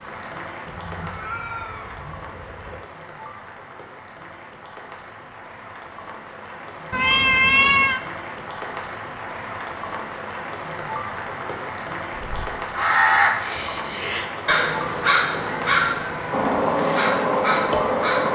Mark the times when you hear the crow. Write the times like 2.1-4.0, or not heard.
12.2-18.3.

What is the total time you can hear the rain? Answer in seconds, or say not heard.
18 s.